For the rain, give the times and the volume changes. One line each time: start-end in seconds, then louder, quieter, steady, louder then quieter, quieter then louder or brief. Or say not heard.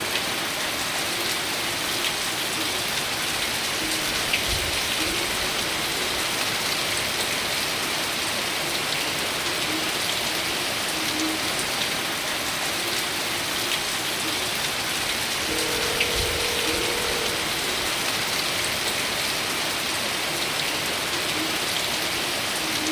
0.0-22.8 steady.